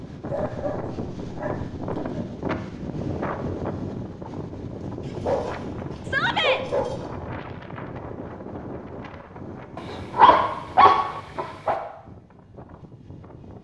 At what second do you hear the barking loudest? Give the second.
10 s.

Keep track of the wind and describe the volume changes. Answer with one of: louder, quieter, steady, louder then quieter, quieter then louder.
quieter.